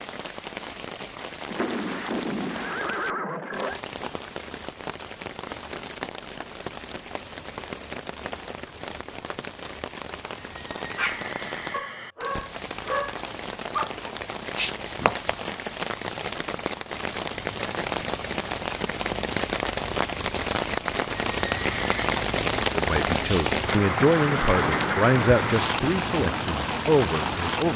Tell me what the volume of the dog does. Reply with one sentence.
The loudness of the dog goes up.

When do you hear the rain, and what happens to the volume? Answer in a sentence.
You can hear the rain from 0.0 to 27.7 s, getting louder.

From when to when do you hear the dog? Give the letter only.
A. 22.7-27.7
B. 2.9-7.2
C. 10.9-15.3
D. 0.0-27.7
C.